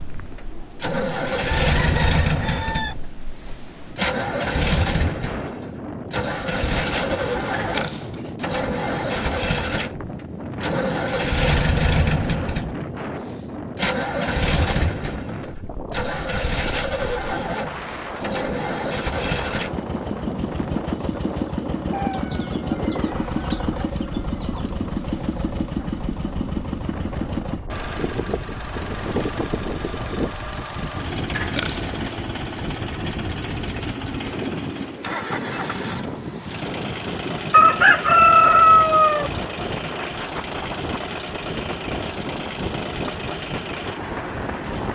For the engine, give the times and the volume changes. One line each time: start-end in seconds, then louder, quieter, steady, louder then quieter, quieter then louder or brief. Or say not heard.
0.0-44.9 quieter.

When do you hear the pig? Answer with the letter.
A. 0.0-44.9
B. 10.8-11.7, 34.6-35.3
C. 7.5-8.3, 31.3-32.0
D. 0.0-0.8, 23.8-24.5
C.